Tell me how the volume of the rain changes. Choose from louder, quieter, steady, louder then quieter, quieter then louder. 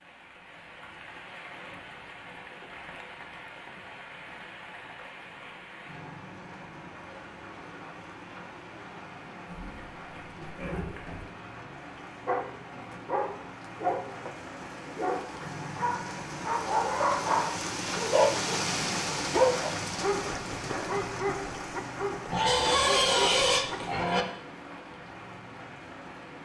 louder then quieter.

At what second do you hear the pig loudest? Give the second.
23 s.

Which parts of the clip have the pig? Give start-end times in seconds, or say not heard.
9.4-11.2, 22.3-24.2.